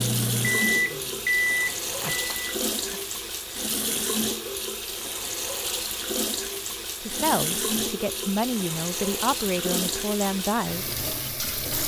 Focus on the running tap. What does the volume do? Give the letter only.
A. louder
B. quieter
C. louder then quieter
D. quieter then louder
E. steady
E.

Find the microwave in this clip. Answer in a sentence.
The microwave can be heard from 0.0 to 3.0 s.